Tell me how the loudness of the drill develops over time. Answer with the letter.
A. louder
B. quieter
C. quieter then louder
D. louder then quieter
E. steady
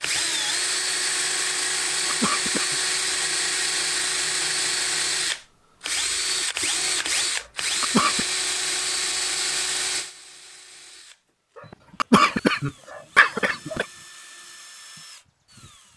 B.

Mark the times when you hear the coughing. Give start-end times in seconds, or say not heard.
2.0-2.8, 7.4-8.2, 12.0-13.8.